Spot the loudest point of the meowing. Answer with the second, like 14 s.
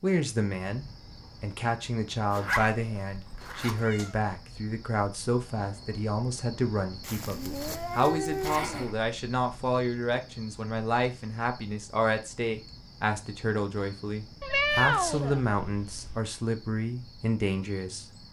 15 s.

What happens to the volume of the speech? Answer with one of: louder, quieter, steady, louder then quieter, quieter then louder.
steady.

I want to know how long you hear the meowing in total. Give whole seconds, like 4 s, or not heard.
5 s.